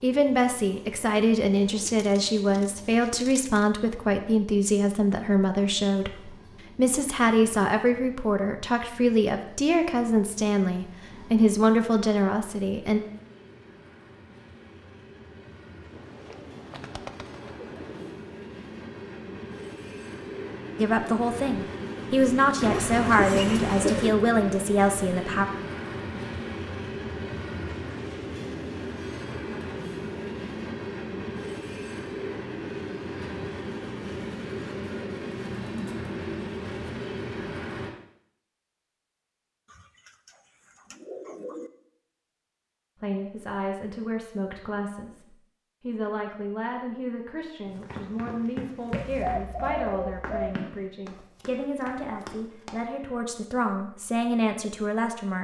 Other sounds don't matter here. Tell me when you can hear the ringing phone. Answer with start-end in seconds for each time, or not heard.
not heard.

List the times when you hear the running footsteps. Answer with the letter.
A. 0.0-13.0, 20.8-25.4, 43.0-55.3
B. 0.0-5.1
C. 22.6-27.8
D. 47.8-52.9
D.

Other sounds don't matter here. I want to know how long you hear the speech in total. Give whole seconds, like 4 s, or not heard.
30 s.